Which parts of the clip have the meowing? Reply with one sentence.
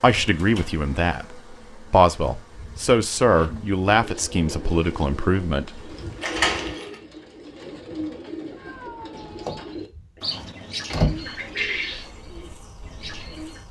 The meowing can be heard from 8.6 to 9.6 s.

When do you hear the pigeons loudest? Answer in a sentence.
The loudest moment of the pigeons is at 12 seconds.